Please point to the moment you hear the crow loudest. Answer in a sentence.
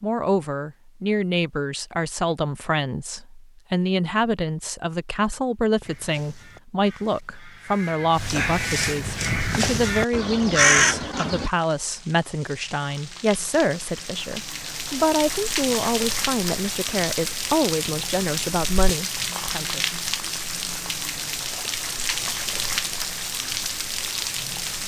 The volume of the crow peaks at 11 seconds.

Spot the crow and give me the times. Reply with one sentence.
You can hear the crow from 5.8 to 11.5 s.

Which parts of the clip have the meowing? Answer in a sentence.
You can't hear the meowing here.